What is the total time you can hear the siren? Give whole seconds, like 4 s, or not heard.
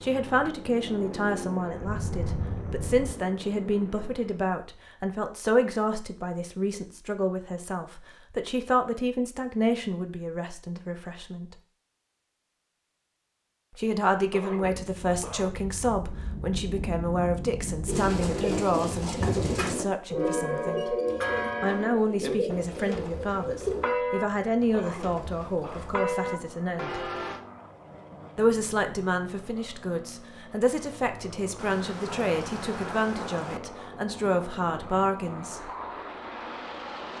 not heard.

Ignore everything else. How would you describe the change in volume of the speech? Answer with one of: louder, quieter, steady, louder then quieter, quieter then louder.
steady.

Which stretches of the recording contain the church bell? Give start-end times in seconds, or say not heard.
20.1-27.4.